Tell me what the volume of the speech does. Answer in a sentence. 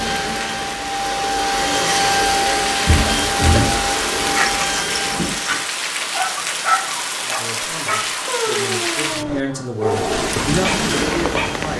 The loudness of the speech goes up.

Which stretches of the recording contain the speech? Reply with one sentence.
You can hear the speech from 7.2 to 11.7 s.